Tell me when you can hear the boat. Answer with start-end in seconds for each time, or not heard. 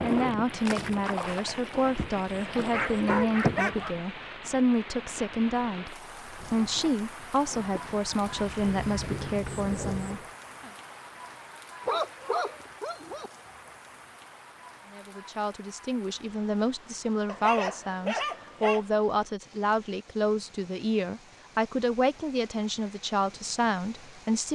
0.0-4.0, 6.2-10.2.